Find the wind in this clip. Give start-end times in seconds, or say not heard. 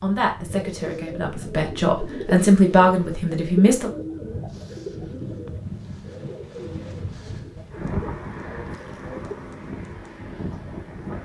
0.0-11.2.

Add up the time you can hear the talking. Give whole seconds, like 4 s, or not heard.
4 s.